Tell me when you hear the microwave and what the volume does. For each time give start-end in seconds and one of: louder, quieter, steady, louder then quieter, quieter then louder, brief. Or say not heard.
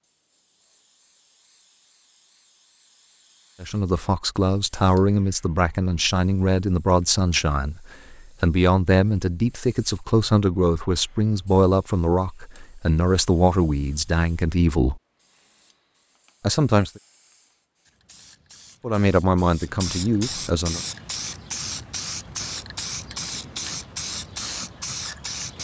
not heard.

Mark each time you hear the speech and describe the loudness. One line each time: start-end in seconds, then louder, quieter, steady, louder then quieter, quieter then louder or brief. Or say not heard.
3.6-15.0 steady
16.4-17.0 brief
18.8-20.8 brief.